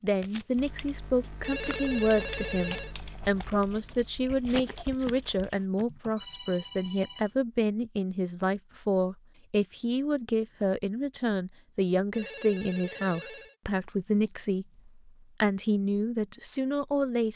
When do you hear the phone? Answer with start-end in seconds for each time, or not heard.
1.4-3.0, 6.2-7.3, 12.1-13.6.